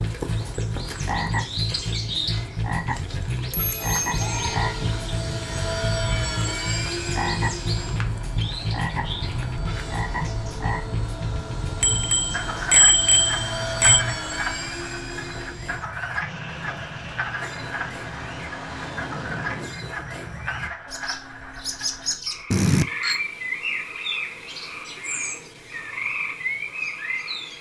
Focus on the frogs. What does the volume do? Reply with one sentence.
The loudness of the frogs goes down.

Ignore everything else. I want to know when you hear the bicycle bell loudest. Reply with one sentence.
The loudest moment of the bicycle bell is at 13 seconds.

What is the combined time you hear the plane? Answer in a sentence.
You can hear the plane for 16 seconds altogether.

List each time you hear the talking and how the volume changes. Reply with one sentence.
The talking can't be heard in this clip.